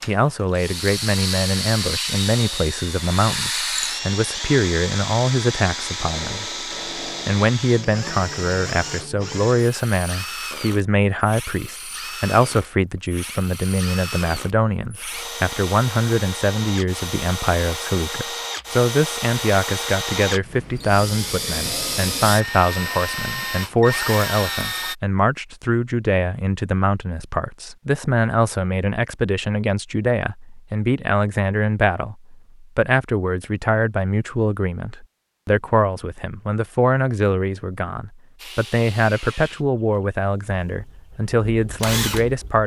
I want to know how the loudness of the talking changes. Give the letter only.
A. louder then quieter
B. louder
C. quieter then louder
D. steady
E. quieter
D.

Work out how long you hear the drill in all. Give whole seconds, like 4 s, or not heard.
29 s.